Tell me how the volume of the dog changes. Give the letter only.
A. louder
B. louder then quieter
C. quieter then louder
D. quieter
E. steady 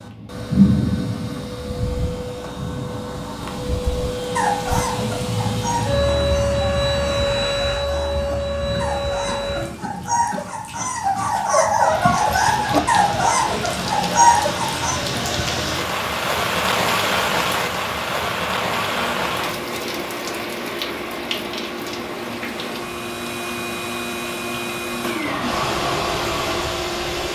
C.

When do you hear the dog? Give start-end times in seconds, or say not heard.
4.3-15.0.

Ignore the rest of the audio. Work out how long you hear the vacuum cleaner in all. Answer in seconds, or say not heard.
18 s.